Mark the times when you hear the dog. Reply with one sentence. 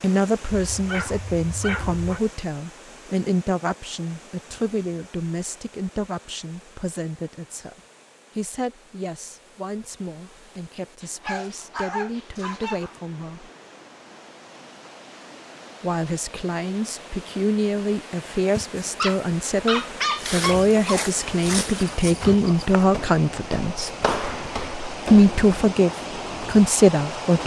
The dog can be heard from 0.7 to 2.2 s, from 11.0 to 12.9 s and from 18.6 to 21.1 s.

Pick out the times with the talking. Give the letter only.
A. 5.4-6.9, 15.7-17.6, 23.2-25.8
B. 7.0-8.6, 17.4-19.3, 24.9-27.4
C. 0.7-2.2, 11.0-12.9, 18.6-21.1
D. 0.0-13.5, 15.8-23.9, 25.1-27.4
D.